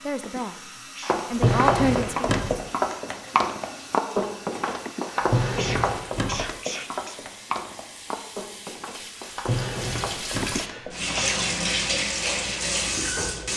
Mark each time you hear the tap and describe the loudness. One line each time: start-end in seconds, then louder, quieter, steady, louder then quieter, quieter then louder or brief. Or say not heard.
0.0-13.5 louder.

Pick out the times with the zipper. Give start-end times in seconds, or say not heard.
not heard.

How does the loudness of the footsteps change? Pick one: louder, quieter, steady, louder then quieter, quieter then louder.
quieter.